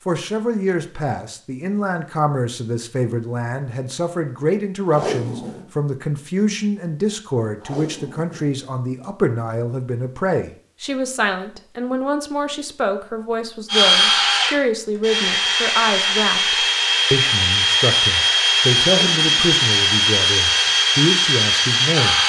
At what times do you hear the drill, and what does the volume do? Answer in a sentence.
The drill can be heard from 13.7 to 22.2 s, at a steady volume.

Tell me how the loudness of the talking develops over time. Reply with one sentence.
The loudness of the talking stays about the same.